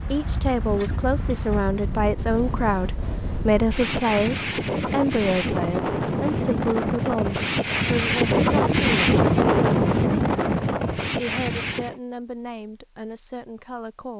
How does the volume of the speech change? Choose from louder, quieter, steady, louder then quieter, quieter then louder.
quieter.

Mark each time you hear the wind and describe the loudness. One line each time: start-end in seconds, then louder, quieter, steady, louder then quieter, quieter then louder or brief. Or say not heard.
0.0-12.0 louder.